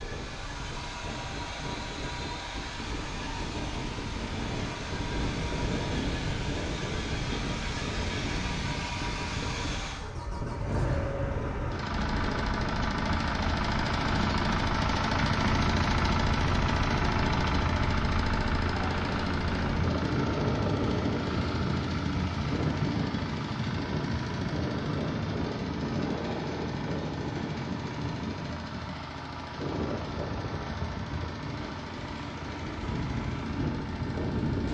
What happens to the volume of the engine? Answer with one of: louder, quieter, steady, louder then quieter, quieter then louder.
louder then quieter.